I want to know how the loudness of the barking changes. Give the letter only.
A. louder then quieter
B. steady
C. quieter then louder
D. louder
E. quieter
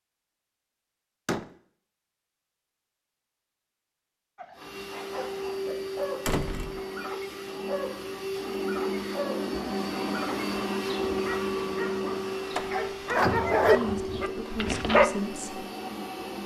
D.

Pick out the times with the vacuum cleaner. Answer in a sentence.
The vacuum cleaner can be heard from 4.5 to 16.4 s.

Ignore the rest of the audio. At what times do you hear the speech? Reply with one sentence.
You can hear the speech from 13.7 to 15.7 s.